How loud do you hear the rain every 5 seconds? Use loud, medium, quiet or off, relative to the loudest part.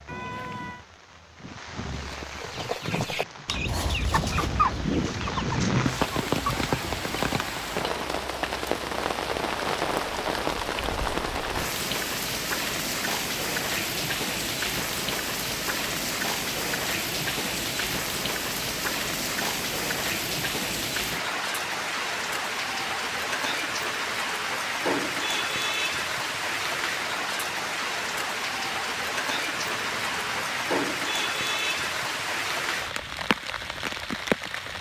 medium, loud, loud, loud, loud, loud, loud.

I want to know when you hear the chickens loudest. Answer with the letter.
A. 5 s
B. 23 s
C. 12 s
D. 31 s
A.